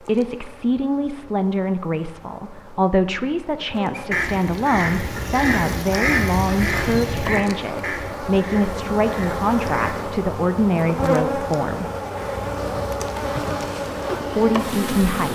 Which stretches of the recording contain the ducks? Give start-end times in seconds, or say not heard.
3.9-9.9.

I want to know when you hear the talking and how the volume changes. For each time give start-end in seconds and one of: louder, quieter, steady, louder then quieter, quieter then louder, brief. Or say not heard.
0.0-11.8 steady
14.3-15.3 brief.